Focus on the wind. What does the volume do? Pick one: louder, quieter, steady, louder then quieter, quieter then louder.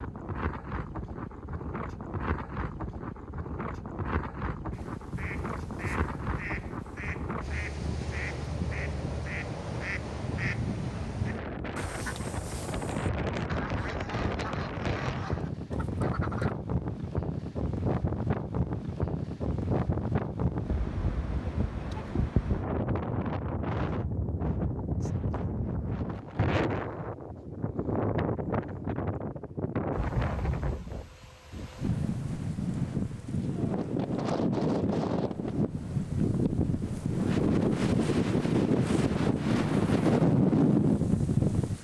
louder.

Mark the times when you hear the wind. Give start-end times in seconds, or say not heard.
0.0-41.7.